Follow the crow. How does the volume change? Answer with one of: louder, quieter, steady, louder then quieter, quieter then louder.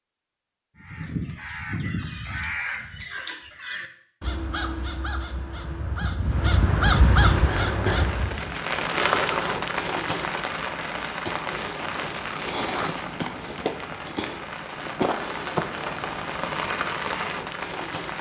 louder.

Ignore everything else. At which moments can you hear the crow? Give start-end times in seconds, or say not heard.
0.8-8.6.